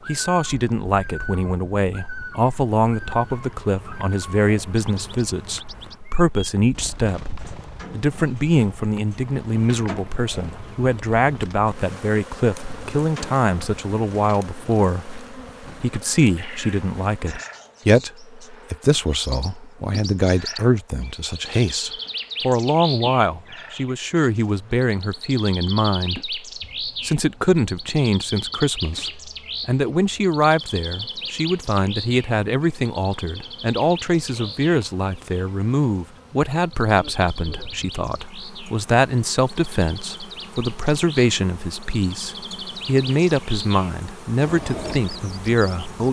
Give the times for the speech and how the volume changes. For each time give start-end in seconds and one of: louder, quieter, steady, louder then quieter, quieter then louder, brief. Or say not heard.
0.1-46.0 steady.